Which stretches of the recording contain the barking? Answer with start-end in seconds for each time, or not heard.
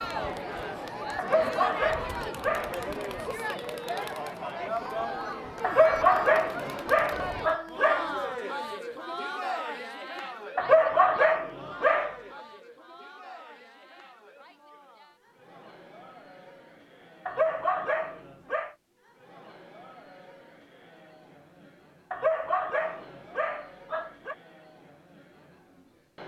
1.1-2.8, 5.6-8.1, 10.6-12.2, 17.2-18.8, 22.1-24.4.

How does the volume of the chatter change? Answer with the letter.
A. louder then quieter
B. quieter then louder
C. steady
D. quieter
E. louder
D.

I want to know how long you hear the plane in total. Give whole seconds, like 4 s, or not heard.
not heard.